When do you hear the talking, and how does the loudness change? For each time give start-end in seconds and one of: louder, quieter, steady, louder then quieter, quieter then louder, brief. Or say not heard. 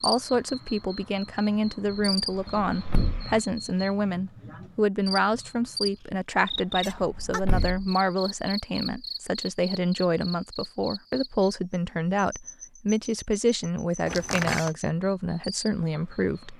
0.0-16.5 steady.